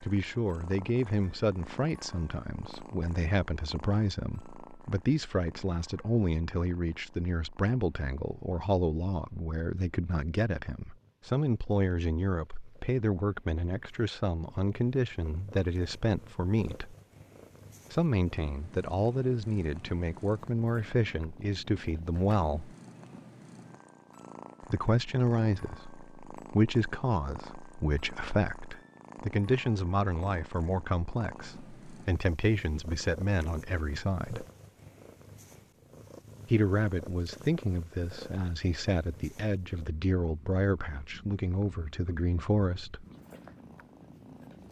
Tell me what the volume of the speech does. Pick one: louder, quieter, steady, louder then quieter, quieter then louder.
steady.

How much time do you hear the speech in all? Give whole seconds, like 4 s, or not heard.
38 s.